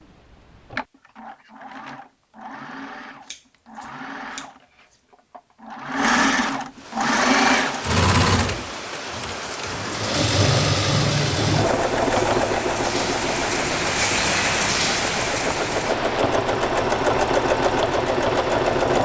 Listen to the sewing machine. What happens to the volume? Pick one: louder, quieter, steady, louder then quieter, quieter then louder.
louder.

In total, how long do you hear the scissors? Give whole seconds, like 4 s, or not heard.
2 s.